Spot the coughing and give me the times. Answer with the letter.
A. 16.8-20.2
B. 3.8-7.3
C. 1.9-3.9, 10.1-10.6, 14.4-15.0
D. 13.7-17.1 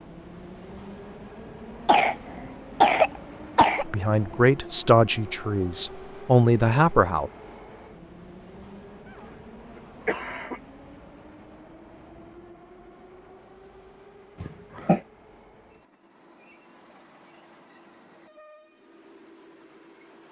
C.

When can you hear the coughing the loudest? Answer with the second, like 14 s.
3 s.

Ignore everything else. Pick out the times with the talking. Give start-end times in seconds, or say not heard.
3.8-7.3.